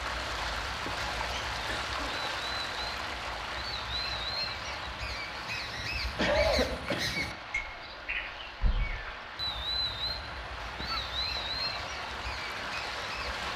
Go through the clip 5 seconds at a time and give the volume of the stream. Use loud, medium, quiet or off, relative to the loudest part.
loud, medium, loud.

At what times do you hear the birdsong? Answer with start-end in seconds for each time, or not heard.
0.0-13.5.